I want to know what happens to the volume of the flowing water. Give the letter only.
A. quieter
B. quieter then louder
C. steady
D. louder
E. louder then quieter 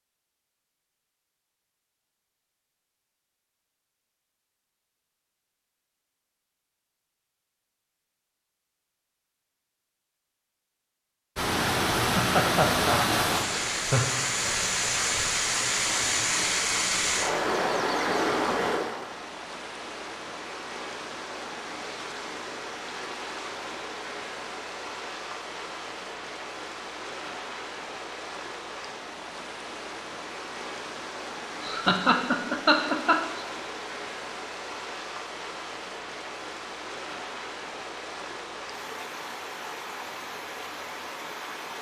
A.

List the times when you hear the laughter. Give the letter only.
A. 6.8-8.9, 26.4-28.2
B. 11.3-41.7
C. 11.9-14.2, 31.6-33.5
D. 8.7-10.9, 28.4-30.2
C.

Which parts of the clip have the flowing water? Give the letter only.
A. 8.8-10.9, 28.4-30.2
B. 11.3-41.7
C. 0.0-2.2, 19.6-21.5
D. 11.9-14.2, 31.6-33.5
B.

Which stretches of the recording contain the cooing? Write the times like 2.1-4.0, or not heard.
not heard.